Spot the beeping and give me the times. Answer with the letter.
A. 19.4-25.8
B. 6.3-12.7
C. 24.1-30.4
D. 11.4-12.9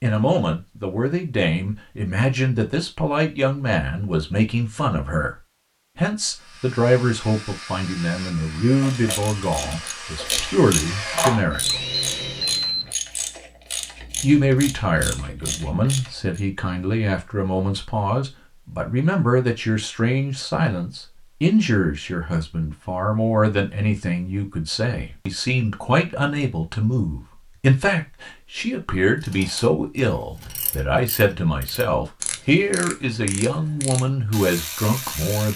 D.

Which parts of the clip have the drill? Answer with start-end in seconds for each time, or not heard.
6.3-12.7.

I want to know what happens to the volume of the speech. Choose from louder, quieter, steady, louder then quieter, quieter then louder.
steady.